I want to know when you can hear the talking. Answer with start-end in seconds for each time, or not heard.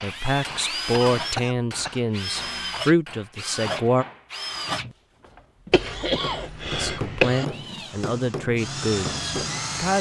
0.0-4.0, 6.7-9.9.